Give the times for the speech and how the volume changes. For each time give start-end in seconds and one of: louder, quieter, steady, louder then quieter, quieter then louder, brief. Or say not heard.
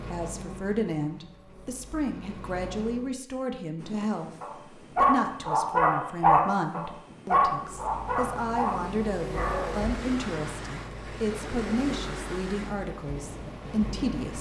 0.0-14.3 steady.